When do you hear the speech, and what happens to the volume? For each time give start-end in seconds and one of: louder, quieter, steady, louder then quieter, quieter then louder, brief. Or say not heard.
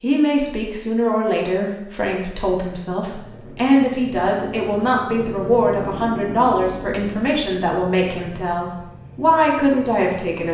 0.0-10.4 steady.